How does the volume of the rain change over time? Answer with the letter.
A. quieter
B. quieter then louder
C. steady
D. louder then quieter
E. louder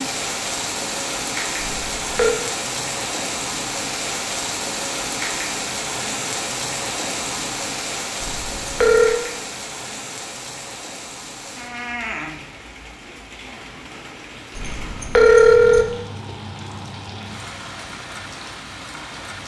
A.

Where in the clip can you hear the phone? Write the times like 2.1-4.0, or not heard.
1.6-2.4, 8.2-9.2, 14.6-15.8.